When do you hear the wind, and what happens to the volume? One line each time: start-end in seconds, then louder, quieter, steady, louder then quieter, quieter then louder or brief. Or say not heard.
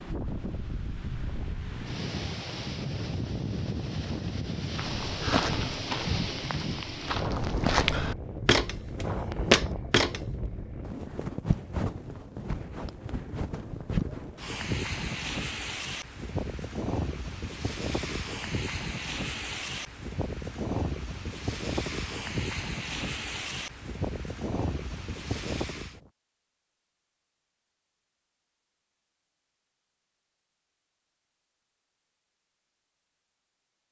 0.0-26.1 steady.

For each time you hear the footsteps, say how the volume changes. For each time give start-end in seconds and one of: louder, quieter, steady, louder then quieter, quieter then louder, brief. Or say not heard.
4.8-10.2 quieter then louder.